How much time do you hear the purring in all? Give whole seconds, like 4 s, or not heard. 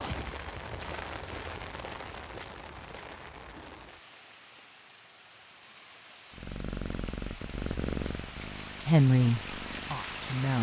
4 s.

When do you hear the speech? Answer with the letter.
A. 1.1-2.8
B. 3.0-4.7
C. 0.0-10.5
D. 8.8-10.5
D.